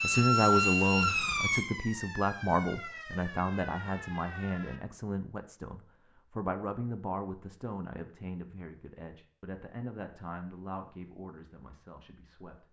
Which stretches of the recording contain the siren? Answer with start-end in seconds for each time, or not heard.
0.0-4.8.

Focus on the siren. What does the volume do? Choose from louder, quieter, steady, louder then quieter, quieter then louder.
quieter.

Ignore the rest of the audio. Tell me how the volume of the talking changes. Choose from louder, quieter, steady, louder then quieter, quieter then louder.
quieter.